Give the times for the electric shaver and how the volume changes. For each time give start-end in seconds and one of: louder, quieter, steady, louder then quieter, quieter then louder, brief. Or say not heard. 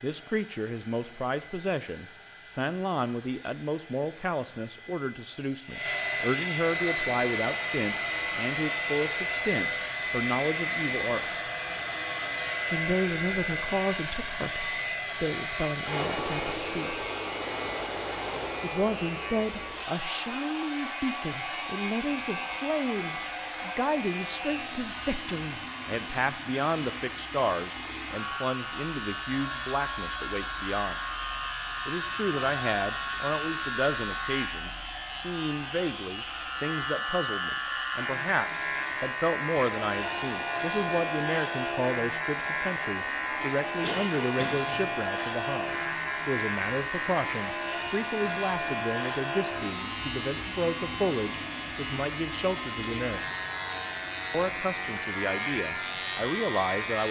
6.8-57.0 louder.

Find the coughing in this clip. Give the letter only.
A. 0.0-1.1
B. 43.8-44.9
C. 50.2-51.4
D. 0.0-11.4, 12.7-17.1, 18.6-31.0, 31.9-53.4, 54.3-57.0
B.